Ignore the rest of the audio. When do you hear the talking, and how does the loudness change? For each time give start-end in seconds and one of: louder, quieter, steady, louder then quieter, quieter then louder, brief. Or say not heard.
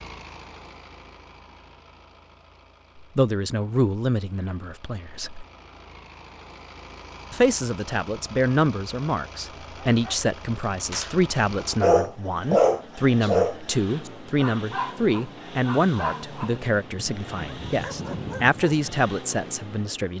3.0-5.5 brief
7.3-20.1 steady.